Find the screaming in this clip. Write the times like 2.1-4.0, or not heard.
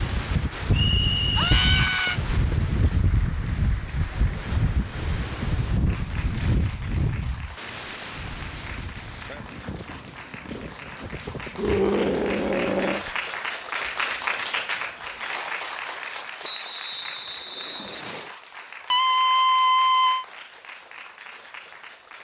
1.4-2.2, 11.6-13.1, 18.9-20.2.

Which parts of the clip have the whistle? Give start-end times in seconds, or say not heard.
0.7-1.7, 16.4-18.4.